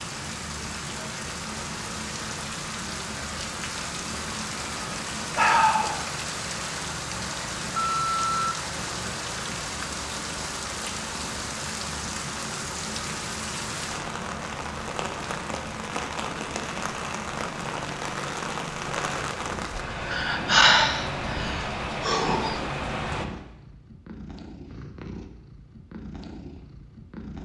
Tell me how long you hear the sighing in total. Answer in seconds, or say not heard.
3 s.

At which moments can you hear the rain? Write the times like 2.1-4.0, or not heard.
0.0-23.2.